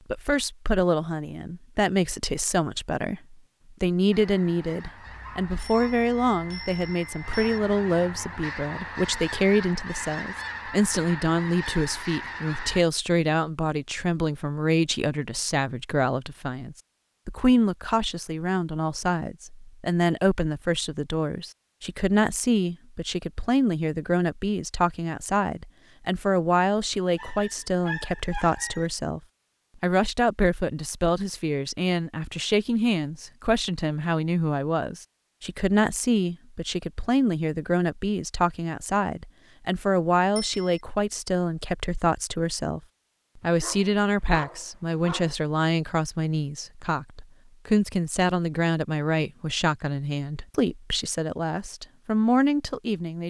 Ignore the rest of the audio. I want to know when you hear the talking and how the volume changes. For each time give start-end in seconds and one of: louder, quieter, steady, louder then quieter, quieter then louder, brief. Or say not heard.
0.1-29.2 steady
29.8-53.2 steady.